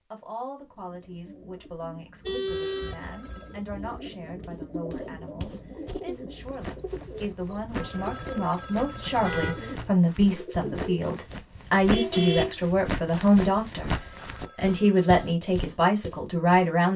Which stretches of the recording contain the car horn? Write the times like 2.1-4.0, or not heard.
2.2-4.0, 9.2-9.7, 11.8-12.6.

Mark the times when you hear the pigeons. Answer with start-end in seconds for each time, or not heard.
0.7-11.0.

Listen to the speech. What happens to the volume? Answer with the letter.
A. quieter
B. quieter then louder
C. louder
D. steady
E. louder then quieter
C.